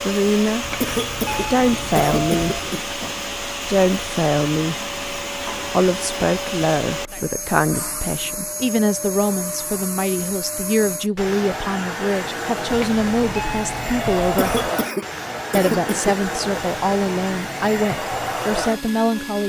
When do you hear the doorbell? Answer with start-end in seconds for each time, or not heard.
0.6-2.6, 12.7-14.7.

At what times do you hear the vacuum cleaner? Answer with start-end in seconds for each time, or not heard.
0.0-19.4.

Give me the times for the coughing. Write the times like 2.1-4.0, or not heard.
0.8-3.0, 14.3-16.1.